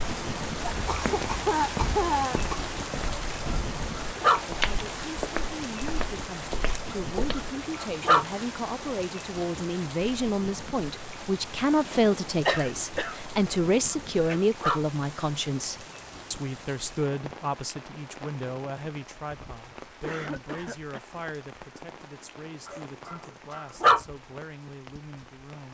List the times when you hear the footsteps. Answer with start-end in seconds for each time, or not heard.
0.7-7.4.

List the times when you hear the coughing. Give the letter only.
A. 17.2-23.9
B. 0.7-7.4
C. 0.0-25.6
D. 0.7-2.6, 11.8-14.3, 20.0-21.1
D.